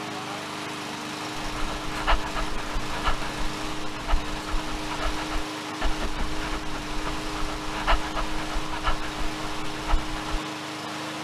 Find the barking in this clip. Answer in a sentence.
You can hear the barking from 1.4 to 10.4 s.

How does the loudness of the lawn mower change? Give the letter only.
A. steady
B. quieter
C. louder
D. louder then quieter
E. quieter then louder
A.